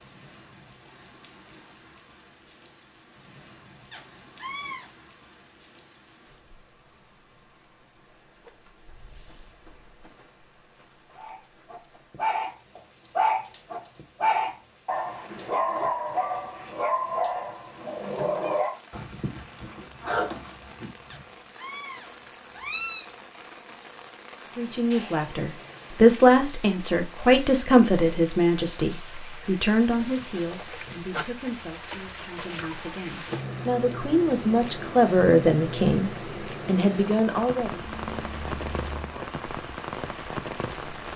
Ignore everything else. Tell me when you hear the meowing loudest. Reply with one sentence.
The loudest moment of the meowing is at 23 seconds.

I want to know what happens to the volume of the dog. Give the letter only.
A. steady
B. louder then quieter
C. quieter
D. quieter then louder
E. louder
C.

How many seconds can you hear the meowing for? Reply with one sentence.
The meowing can be heard for 4 seconds in total.